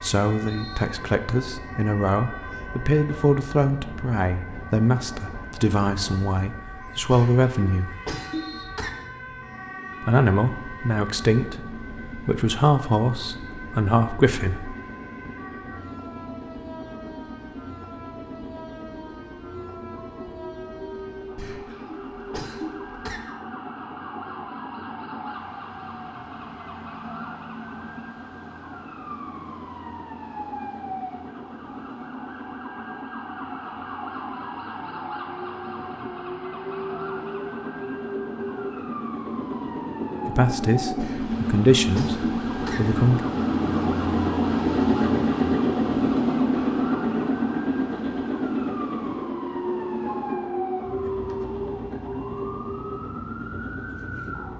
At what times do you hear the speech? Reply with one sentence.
You can hear the speech from 0.0 to 8.0 s, from 10.0 to 14.8 s and from 40.2 to 43.2 s.